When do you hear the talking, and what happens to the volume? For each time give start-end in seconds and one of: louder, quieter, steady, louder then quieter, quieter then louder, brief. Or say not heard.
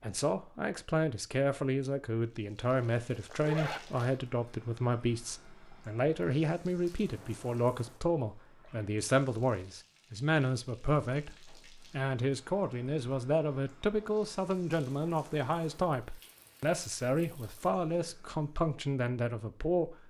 0.0-20.0 steady.